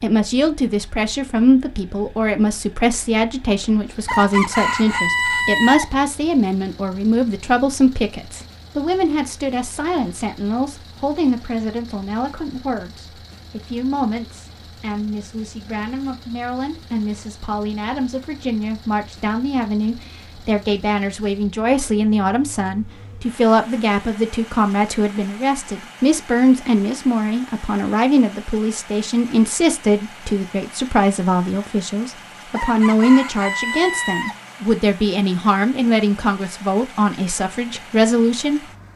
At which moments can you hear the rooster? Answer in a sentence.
You can hear the rooster from 4.0 to 5.9 s and from 32.5 to 34.4 s.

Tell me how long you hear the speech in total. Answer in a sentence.
You can hear the speech for 39 seconds altogether.